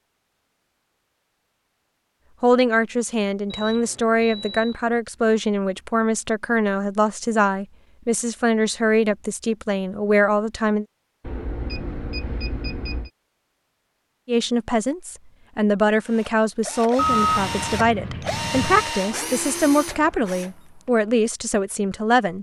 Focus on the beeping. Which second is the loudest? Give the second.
17 s.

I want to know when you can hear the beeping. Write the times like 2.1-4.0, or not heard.
3.5-4.8, 11.2-13.1, 16.9-18.9.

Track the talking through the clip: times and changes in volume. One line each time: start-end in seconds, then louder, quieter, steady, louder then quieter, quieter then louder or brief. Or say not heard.
2.4-10.8 steady
14.2-22.3 steady.